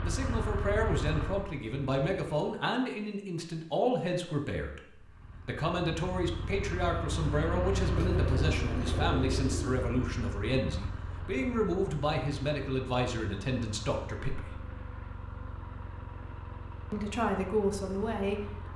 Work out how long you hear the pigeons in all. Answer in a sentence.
You can hear the pigeons for 2 seconds altogether.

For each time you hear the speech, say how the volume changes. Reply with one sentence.
The speech can be heard from 0.0 to 14.7 s, at a steady volume; and briefly from 16.9 to 18.7 s.